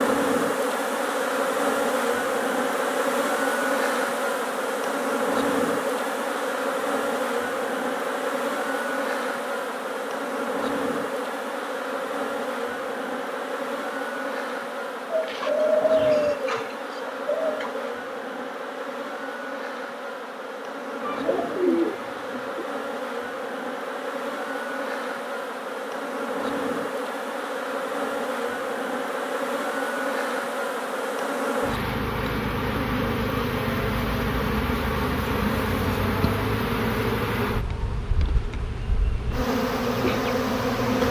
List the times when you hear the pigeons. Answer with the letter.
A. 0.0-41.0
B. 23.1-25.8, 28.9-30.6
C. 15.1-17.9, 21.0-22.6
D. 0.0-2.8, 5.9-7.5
C.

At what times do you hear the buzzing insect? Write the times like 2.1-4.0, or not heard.
0.0-41.0.